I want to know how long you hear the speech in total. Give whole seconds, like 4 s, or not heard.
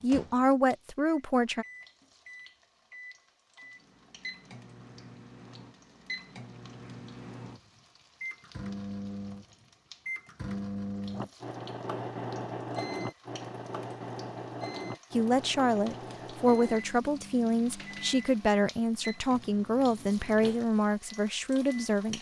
9 s.